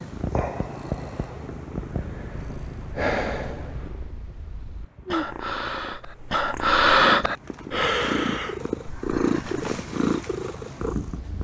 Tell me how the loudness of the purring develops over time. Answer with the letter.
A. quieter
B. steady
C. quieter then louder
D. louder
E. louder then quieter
C.